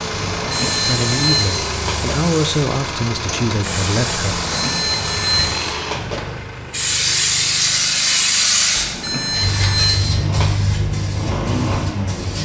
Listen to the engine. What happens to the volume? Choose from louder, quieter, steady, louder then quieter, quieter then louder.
quieter then louder.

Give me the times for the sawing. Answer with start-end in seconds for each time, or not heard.
not heard.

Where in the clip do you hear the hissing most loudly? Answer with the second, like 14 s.
8 s.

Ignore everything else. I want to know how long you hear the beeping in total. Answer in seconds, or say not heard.
6 s.